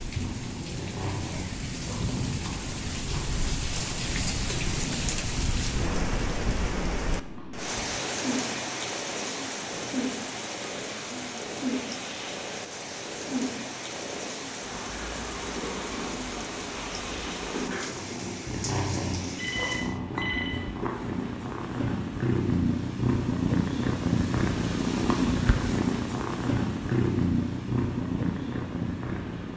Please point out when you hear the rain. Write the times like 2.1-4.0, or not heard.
0.0-20.0.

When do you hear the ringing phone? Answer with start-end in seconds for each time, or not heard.
19.4-20.6.